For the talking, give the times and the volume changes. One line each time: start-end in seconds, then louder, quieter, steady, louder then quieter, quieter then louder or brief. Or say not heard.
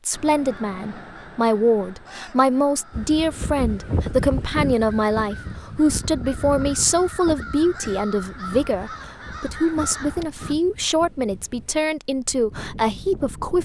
0.1-13.6 steady.